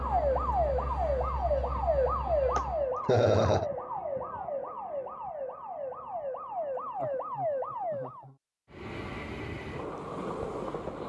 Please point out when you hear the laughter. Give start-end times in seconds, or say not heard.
2.5-3.6, 7.0-8.3.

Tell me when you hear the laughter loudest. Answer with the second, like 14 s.
3 s.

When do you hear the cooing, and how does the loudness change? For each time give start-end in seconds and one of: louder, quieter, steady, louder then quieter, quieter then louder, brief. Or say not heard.
not heard.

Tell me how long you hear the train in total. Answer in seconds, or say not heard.
5 s.